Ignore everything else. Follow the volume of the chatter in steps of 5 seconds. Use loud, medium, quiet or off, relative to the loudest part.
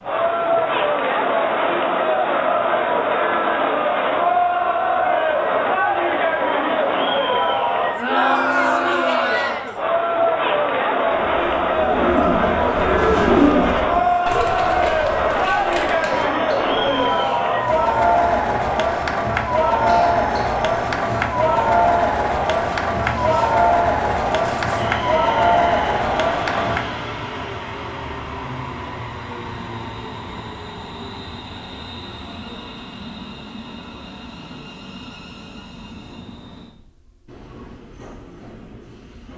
loud, loud, loud, loud, loud, loud, off, off.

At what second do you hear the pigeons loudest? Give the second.
13 s.